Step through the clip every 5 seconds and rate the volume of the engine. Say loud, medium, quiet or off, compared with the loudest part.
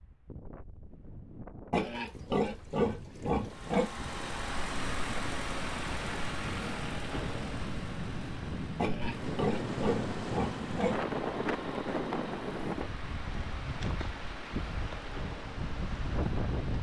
loud, loud, medium, medium.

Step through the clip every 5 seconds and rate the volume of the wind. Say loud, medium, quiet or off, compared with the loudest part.
quiet, loud, loud, loud.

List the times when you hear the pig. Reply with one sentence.
You can hear the pig from 1.7 to 3.9 s and from 8.8 to 11.1 s.